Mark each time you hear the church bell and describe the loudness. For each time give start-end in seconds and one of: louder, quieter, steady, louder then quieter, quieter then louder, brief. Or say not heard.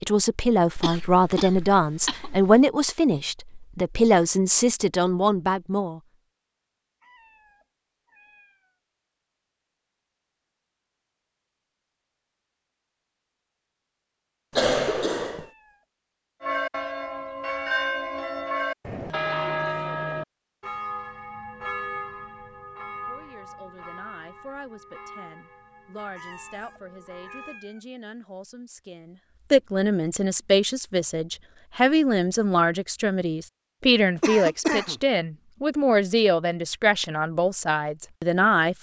16.4-27.6 quieter.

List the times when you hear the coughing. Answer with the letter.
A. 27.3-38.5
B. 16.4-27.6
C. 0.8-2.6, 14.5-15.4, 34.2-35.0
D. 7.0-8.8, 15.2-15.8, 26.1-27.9
C.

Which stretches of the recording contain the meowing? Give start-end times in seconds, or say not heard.
7.0-8.8, 15.2-15.8, 26.1-27.9.